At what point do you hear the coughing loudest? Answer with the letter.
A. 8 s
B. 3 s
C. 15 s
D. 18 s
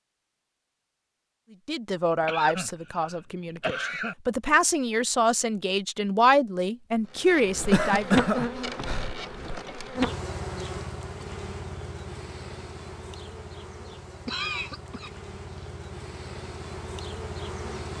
A.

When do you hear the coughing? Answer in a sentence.
You can hear the coughing from 2.2 to 4.2 s, from 7.6 to 9.2 s and from 14.2 to 15.7 s.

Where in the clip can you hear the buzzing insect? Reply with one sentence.
You can hear the buzzing insect from 7.0 to 17.9 s.